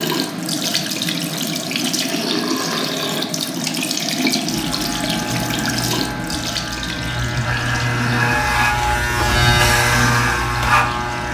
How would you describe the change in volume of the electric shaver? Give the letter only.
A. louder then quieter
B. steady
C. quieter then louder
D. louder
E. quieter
D.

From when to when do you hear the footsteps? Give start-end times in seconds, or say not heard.
not heard.